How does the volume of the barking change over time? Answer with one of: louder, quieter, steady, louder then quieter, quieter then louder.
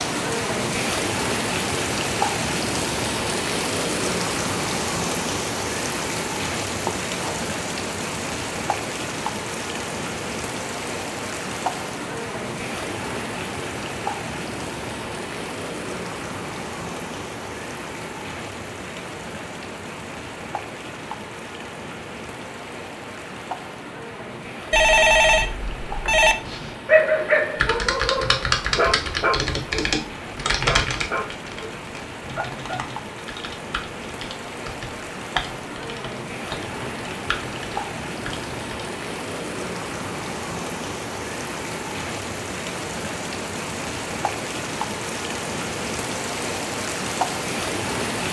quieter.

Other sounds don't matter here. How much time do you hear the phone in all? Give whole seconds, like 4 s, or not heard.
2 s.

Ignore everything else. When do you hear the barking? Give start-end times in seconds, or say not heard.
26.4-32.8.